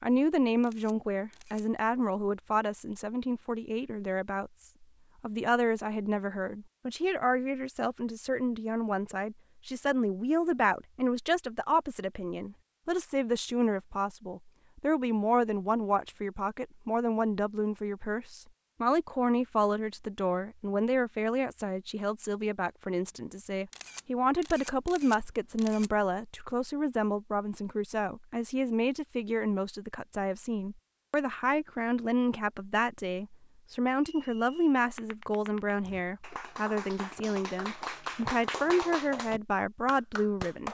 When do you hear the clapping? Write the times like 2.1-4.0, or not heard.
35.0-40.6.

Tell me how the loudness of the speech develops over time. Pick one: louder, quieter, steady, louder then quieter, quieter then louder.
steady.